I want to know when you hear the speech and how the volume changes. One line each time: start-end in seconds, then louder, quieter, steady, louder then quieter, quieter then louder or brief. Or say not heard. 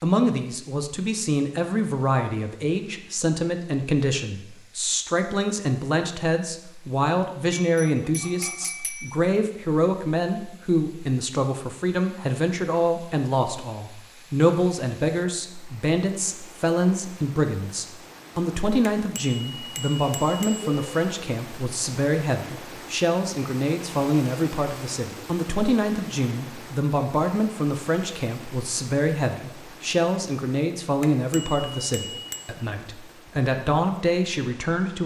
0.0-35.0 steady.